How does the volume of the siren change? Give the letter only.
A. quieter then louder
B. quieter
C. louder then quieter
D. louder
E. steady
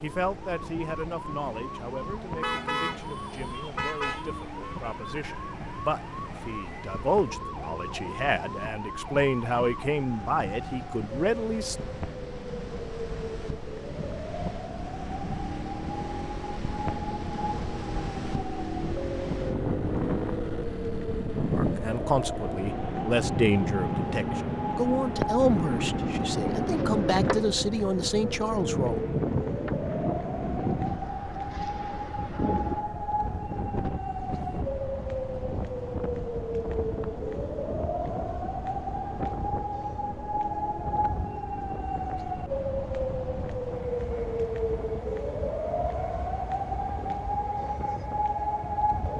D.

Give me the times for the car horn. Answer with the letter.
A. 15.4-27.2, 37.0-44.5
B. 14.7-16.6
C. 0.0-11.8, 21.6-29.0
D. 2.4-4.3
D.